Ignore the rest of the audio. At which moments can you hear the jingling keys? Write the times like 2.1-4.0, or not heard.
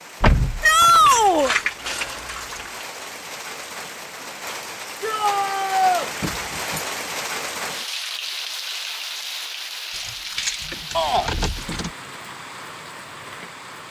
0.2-2.9, 6.2-6.8, 9.9-11.9.